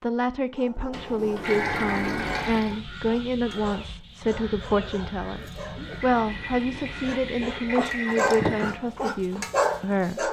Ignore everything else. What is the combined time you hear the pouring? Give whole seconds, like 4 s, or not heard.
4 s.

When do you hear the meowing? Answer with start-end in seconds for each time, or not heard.
not heard.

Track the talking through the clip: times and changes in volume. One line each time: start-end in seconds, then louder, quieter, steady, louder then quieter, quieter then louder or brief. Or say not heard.
0.0-10.2 steady.